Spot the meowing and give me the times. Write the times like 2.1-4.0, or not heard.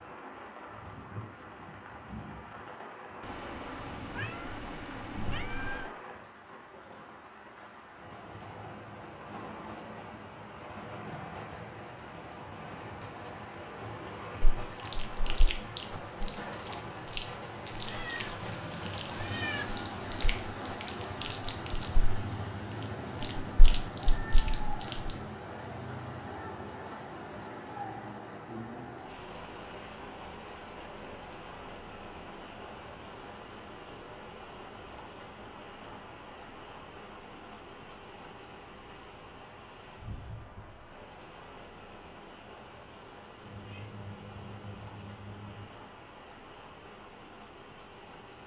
3.2-6.0, 17.9-19.6, 43.4-45.7.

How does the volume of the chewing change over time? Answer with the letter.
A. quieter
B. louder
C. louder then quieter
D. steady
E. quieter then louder
E.